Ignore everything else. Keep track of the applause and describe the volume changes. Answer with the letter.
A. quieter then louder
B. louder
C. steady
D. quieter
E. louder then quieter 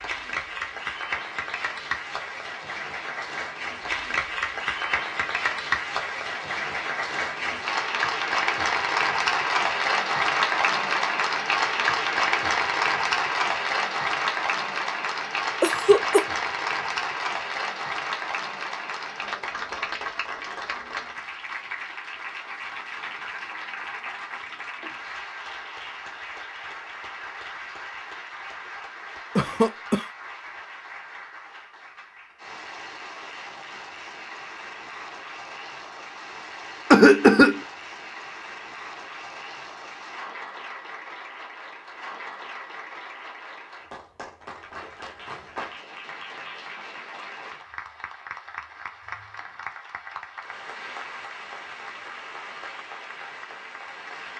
D.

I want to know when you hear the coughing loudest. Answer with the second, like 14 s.
37 s.